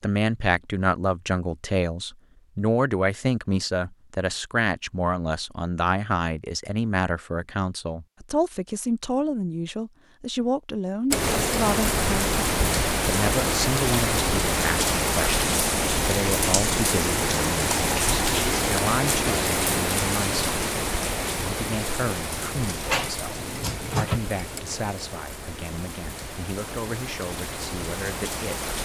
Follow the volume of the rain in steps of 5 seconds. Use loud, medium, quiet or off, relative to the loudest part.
off, off, loud, loud, medium, medium.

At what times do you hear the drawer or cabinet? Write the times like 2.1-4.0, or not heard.
22.8-24.2.